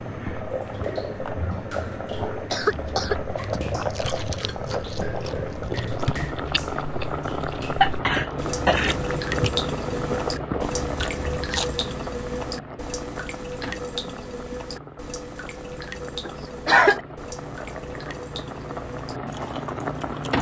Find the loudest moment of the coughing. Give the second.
17 s.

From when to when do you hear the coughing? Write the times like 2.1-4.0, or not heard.
2.1-3.6, 7.8-9.2, 16.2-17.0.